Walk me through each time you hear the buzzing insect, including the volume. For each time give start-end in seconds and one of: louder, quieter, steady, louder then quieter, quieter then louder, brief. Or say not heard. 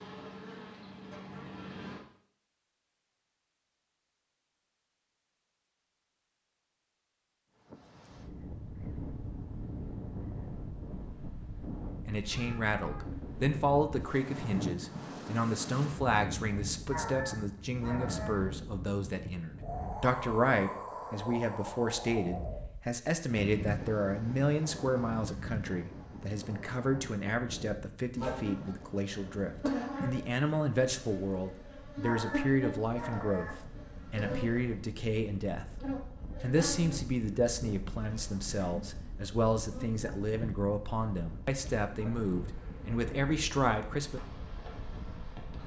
0.0-2.0 brief
28.1-45.6 quieter.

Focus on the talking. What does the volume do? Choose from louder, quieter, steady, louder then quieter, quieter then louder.
steady.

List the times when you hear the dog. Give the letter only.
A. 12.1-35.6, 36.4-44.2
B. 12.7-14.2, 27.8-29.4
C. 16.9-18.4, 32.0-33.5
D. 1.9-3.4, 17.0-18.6
C.